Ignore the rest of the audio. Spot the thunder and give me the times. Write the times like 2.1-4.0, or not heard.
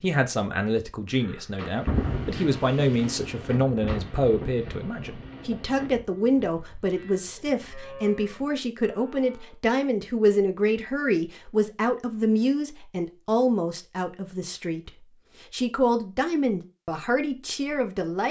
1.9-6.0.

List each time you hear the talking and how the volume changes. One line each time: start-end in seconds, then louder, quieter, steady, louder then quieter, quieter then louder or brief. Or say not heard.
0.0-18.2 steady.